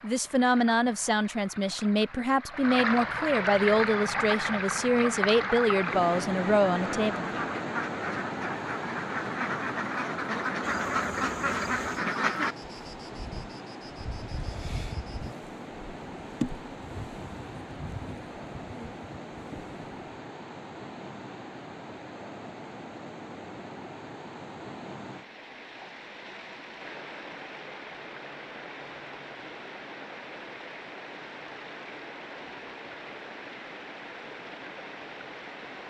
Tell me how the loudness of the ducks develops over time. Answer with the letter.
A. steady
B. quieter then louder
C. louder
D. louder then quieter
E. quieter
C.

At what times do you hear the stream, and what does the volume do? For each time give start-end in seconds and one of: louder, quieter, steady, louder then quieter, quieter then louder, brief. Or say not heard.
0.0-35.8 quieter.